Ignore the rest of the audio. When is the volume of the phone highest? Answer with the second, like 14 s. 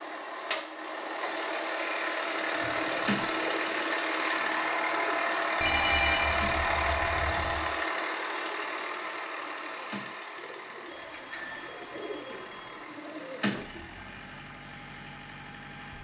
6 s.